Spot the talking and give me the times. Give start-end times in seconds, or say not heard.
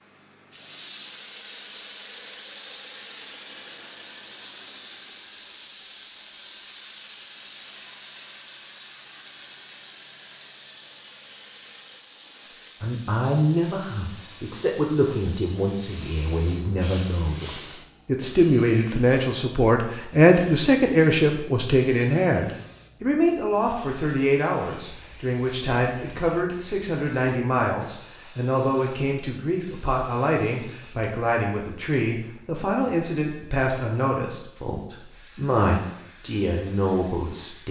12.8-37.6.